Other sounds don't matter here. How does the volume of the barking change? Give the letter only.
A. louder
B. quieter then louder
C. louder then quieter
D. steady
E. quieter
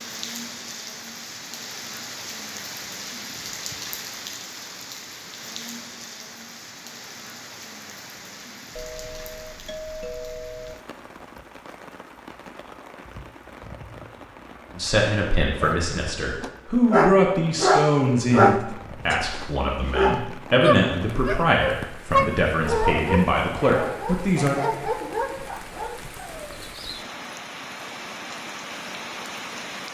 E.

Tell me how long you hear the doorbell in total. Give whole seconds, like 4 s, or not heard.
2 s.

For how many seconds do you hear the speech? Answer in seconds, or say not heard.
10 s.